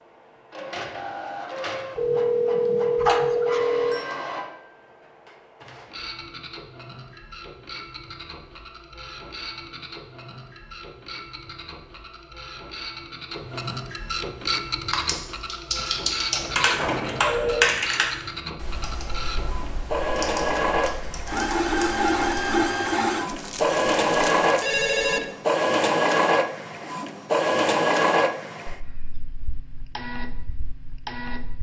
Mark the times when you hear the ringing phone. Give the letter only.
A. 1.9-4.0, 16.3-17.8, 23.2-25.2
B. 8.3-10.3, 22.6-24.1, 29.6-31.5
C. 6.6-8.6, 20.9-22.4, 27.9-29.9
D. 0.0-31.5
A.